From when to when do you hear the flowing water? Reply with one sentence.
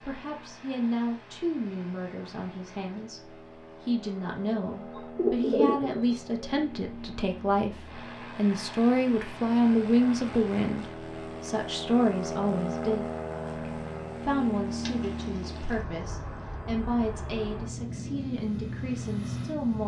The flowing water can't be heard in this clip.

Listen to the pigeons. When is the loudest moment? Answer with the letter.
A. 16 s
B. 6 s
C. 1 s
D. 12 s
B.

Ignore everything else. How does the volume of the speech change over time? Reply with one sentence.
The volume of the speech goes up, then down.